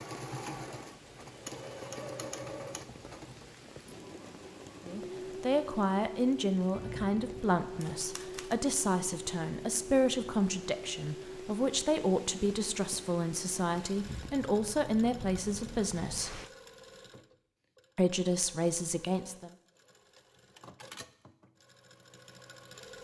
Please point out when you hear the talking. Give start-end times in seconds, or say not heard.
4.8-16.4, 17.9-19.5.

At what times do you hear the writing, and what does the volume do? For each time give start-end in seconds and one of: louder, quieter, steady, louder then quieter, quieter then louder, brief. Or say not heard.
not heard.